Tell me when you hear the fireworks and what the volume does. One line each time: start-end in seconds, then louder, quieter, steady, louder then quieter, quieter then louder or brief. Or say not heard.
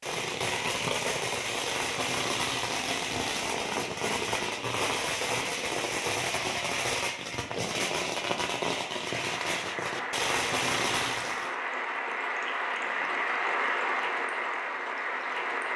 0.0-11.6 steady.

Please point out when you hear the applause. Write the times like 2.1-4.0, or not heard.
9.1-15.7.